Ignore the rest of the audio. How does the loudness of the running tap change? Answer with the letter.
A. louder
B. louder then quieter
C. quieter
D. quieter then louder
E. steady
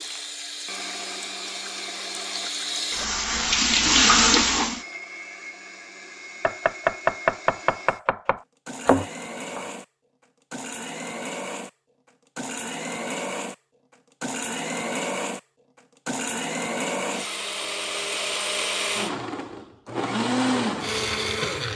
A.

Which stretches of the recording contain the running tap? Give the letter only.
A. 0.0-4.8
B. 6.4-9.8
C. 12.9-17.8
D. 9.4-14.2
A.